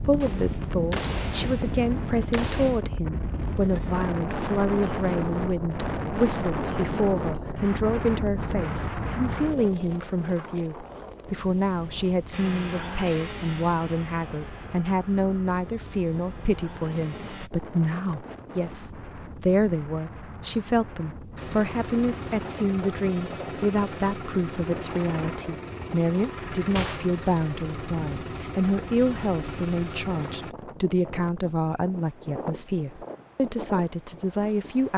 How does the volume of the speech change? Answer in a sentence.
The volume of the speech stays about the same.